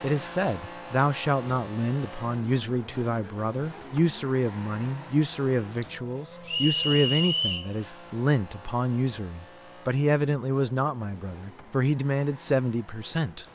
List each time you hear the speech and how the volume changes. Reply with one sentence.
You can hear the speech from 0.0 to 13.4 s, at a steady volume.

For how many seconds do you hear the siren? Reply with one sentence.
The siren can't be heard in this clip.